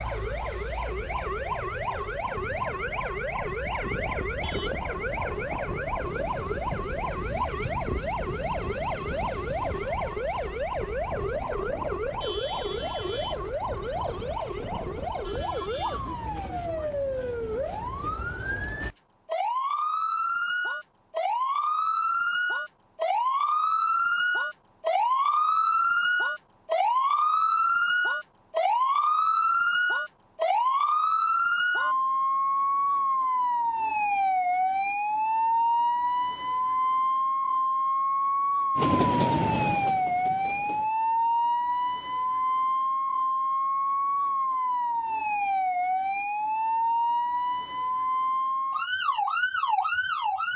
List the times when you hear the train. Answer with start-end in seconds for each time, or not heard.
38.8-40.9.